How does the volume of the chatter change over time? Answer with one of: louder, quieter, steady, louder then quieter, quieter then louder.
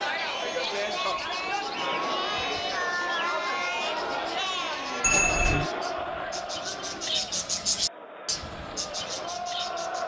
quieter.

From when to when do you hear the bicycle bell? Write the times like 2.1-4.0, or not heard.
5.0-5.7.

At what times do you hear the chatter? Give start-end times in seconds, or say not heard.
0.0-10.0.